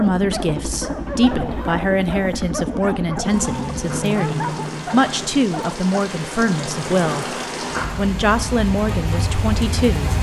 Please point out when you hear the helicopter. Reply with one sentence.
You can hear the helicopter from 0.0 to 7.1 s.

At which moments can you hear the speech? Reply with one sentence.
The speech can be heard from 0.0 to 7.3 s and from 8.0 to 10.1 s.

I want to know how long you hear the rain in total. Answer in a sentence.
The rain can be heard for 7 seconds in total.